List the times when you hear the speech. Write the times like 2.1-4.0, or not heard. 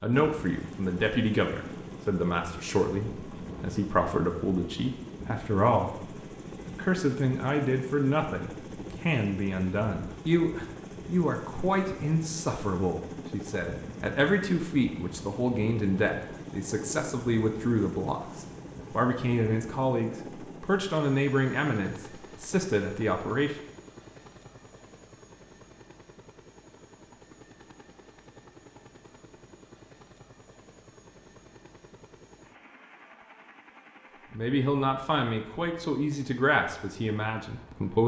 0.0-23.6, 34.3-38.0.